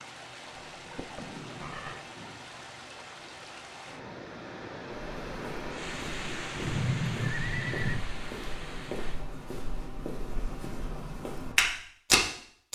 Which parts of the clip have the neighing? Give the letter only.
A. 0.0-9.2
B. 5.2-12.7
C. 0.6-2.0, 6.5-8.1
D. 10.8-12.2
C.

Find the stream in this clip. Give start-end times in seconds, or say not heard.
0.0-9.2.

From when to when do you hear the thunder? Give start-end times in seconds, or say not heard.
1.0-2.5.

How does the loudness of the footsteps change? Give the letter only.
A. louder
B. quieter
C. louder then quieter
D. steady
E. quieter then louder
A.